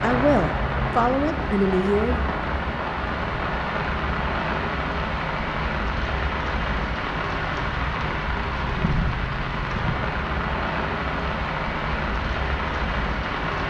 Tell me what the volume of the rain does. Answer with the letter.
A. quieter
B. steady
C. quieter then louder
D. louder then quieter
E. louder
B.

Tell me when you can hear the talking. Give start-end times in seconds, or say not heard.
0.0-2.2.